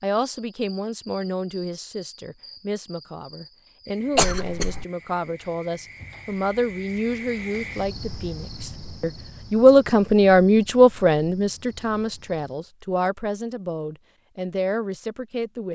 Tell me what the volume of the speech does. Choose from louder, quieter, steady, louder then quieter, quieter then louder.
louder then quieter.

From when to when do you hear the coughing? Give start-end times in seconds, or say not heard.
4.2-4.8.